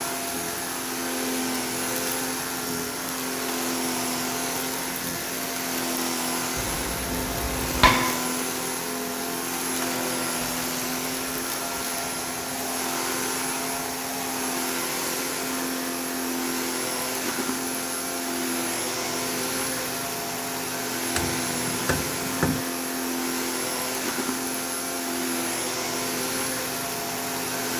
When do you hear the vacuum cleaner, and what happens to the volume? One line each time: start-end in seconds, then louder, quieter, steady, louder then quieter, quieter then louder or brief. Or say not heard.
0.0-27.7 steady.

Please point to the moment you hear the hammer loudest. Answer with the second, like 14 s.
8 s.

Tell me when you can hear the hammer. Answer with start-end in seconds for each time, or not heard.
6.5-8.2, 21.1-22.6.